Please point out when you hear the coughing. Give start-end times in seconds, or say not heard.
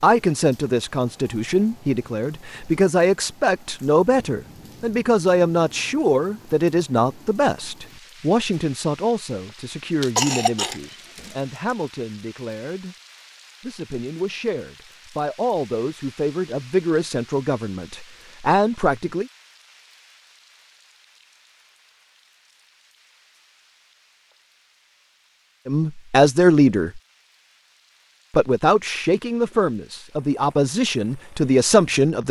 10.0-11.3.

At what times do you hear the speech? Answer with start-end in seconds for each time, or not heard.
0.0-12.9, 13.6-19.2, 25.6-27.0, 28.3-32.2.